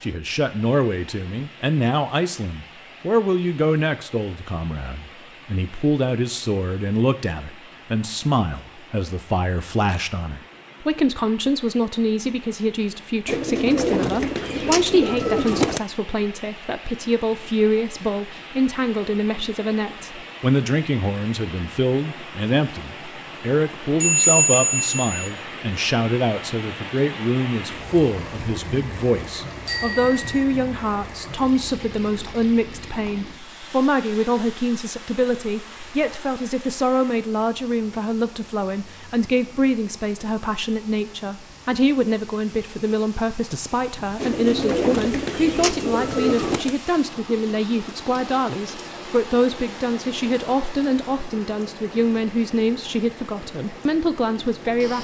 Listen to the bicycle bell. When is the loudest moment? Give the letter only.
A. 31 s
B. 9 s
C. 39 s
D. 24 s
D.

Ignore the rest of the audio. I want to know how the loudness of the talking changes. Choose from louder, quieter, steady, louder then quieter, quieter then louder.
steady.